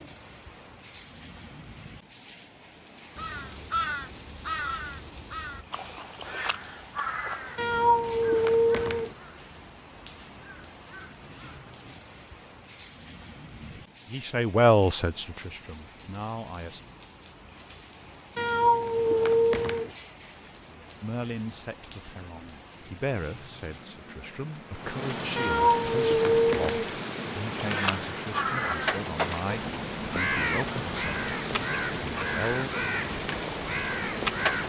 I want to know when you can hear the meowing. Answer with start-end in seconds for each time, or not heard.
7.5-9.1, 18.4-19.9, 25.4-26.9.